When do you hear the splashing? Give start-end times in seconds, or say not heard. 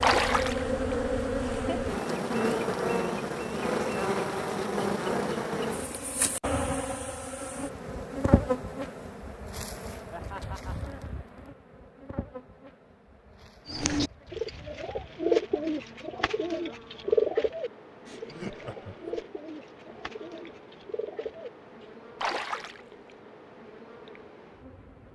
0.0-0.7, 22.2-22.8.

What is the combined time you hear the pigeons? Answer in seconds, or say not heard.
8 s.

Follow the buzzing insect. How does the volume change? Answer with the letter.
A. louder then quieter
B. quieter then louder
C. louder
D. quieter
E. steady
D.